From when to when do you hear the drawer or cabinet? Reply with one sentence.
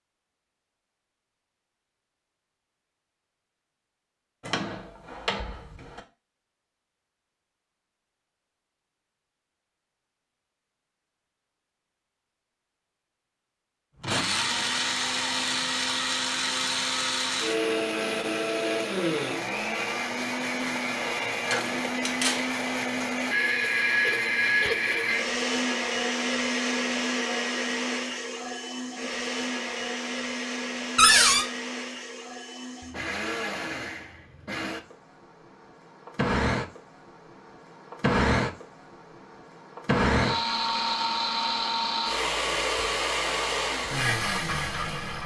You can hear the drawer or cabinet from 4.4 to 6.0 s, from 21.5 to 22.5 s and from 30.9 to 31.4 s.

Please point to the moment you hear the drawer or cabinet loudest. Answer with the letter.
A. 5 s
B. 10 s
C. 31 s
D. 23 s
C.